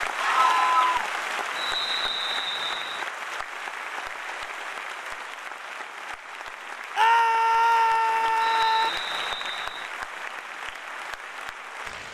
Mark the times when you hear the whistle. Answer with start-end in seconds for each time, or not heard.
1.6-3.0, 8.4-9.9.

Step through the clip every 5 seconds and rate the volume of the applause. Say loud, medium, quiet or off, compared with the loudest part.
loud, loud, medium.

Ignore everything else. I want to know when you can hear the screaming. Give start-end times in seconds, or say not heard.
0.1-1.1, 7.0-8.9.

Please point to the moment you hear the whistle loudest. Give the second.
2 s.